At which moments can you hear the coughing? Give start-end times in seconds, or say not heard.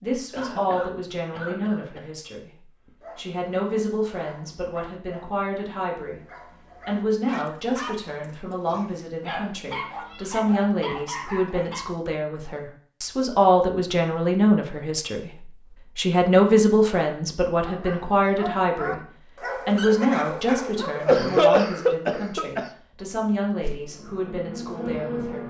0.3-2.0, 20.8-22.7.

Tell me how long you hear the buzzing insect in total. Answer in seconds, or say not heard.
2 s.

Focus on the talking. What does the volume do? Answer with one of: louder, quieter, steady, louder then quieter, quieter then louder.
louder then quieter.